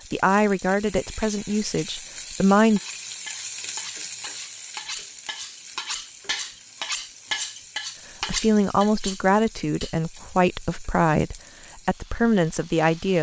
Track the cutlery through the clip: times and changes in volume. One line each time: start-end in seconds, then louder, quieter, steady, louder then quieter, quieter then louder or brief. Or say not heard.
2.8-10.2 louder then quieter.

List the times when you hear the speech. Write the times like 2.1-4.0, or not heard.
0.1-2.8, 8.2-13.1.